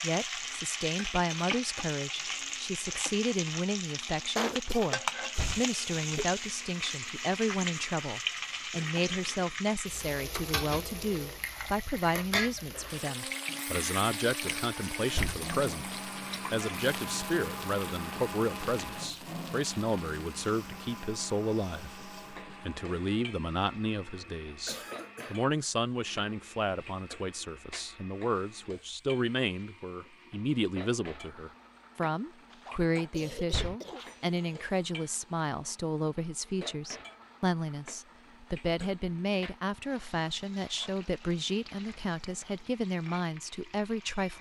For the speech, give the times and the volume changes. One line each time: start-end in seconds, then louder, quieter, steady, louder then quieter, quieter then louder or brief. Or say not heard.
0.0-44.3 steady.